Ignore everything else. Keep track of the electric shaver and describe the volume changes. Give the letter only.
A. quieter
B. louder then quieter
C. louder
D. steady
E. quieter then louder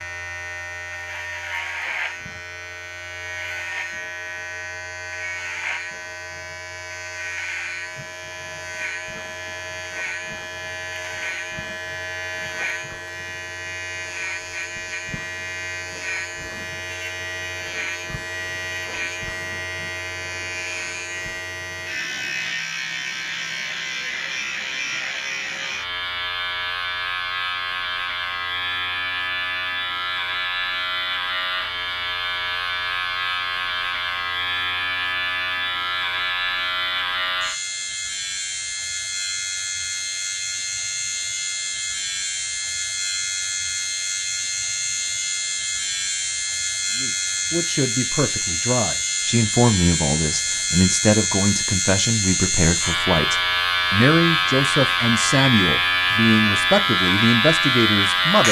C.